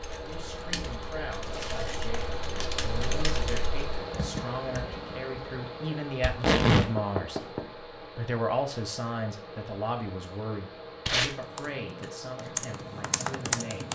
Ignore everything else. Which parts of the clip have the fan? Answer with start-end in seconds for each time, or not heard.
0.0-13.8.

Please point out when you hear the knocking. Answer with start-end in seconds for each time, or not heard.
6.8-7.7.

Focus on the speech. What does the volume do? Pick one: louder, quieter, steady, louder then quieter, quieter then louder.
louder then quieter.